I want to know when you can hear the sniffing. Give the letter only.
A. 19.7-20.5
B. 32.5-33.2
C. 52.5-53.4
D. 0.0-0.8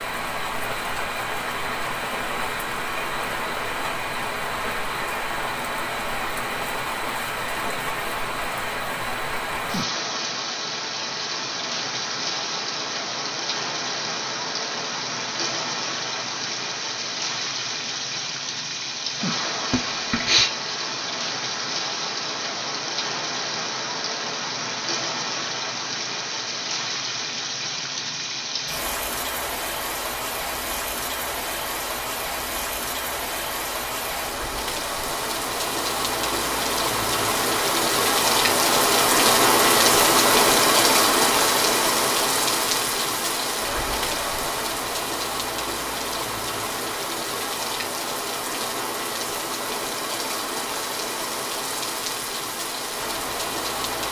A.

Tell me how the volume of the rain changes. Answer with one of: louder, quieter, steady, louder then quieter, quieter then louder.
louder then quieter.